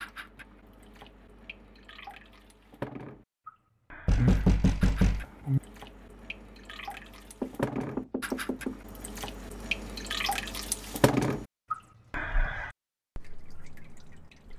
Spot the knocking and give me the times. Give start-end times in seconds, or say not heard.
4.0-5.6, 7.4-8.8.